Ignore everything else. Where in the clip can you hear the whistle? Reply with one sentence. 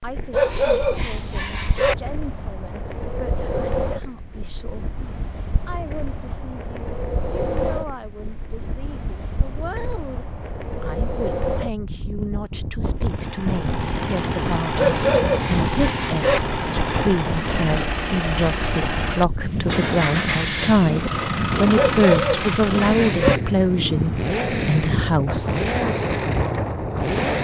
The whistle can't be heard in this clip.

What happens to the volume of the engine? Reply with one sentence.
The loudness of the engine stays about the same.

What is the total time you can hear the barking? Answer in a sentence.
The barking can be heard for 5 seconds in total.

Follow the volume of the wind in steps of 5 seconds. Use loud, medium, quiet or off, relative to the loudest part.
medium, medium, loud, loud, loud, loud.